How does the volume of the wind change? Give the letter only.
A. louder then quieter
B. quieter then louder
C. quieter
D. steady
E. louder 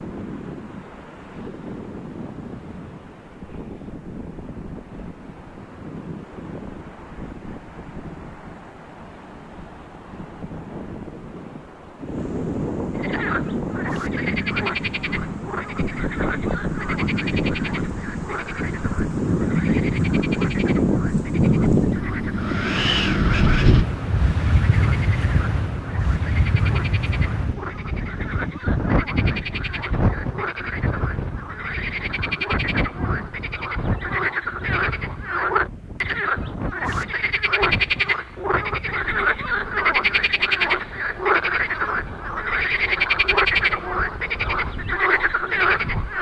A.